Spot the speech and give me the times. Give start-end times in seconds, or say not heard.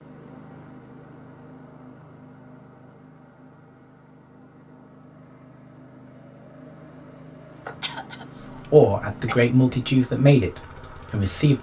8.6-11.5.